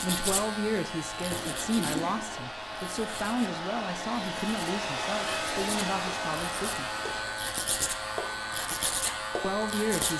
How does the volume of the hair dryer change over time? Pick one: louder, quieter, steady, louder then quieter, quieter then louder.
louder then quieter.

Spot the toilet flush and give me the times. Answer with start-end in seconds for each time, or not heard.
1.3-2.2.